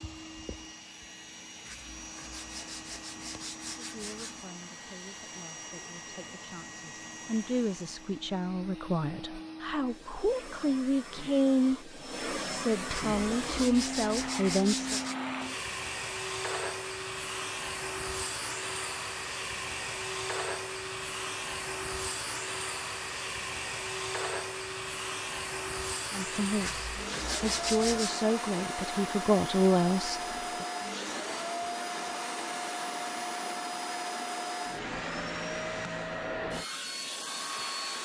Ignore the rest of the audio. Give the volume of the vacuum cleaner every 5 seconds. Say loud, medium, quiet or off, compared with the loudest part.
medium, medium, loud, loud, loud, loud, loud, loud.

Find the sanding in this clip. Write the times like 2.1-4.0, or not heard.
1.6-4.5, 12.9-15.2, 26.6-28.1.